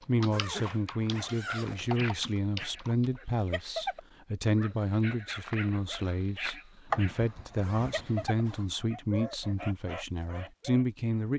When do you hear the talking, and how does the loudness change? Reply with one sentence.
You can hear the talking from 0.1 to 11.3 s, at a steady volume.